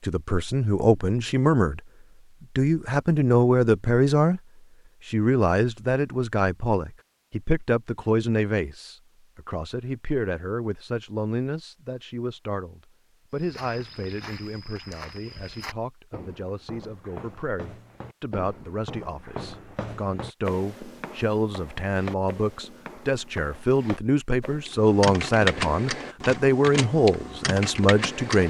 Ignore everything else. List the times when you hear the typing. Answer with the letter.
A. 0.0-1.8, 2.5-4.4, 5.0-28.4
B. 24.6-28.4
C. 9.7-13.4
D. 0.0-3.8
B.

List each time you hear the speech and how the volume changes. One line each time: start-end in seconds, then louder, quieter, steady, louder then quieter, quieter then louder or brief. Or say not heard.
0.0-1.8 brief
2.5-4.4 brief
5.0-28.4 quieter then louder.